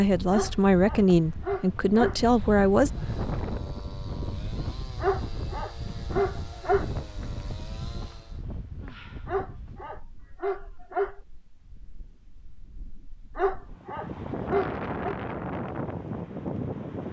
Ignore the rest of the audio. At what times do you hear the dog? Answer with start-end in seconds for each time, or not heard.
0.3-2.2, 5.0-6.9, 9.2-11.2, 13.3-15.2.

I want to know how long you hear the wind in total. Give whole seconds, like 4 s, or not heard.
17 s.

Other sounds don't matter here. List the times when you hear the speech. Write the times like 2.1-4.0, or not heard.
0.0-2.9.